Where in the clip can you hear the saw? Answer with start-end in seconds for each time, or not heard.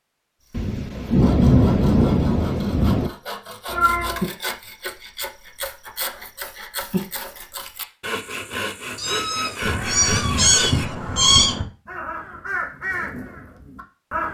0.4-10.9.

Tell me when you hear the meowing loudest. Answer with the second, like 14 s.
11 s.